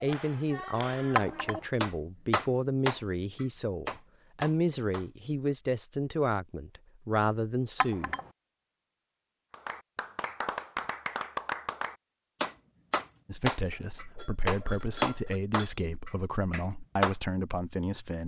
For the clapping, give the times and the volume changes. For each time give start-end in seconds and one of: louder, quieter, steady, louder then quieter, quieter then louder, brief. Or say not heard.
0.0-5.5 louder then quieter
9.5-17.1 louder then quieter.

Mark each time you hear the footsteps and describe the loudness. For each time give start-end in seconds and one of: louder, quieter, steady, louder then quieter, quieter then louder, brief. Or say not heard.
not heard.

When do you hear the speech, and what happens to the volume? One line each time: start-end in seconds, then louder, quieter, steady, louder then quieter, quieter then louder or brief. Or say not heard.
0.0-8.2 steady
13.2-18.2 louder.